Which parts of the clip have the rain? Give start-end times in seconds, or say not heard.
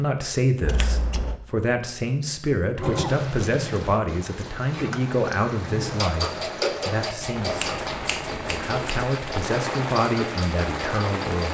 3.0-11.4.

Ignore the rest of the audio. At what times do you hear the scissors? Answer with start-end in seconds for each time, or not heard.
0.7-1.4, 7.2-9.2.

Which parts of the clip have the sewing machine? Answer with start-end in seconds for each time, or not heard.
2.8-11.4.